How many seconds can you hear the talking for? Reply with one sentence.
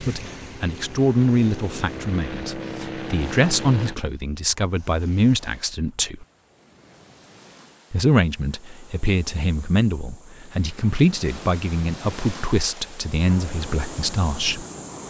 You can hear the talking for 13 seconds altogether.